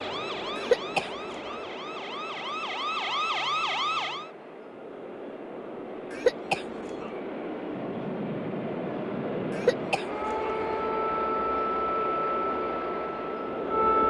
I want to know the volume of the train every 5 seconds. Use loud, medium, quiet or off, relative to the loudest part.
medium, loud, loud.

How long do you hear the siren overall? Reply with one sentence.
The siren can be heard for 8 seconds in total.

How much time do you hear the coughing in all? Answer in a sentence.
You can hear the coughing for 3 seconds altogether.